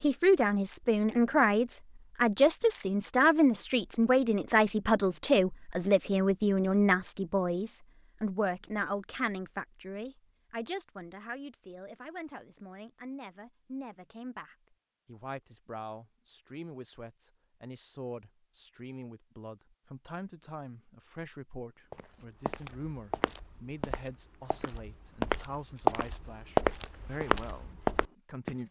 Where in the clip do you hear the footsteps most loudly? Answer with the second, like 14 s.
27 s.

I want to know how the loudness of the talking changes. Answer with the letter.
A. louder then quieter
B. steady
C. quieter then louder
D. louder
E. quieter
E.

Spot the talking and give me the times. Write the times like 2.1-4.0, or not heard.
0.0-28.6.